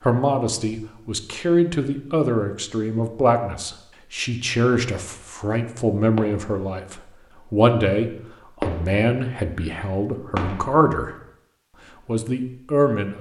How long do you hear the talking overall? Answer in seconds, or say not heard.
12 s.